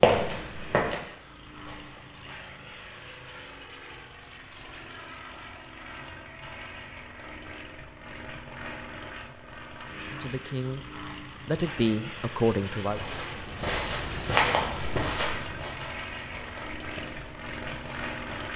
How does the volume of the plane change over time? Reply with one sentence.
The loudness of the plane goes up.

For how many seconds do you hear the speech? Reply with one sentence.
You can hear the speech for 3 seconds altogether.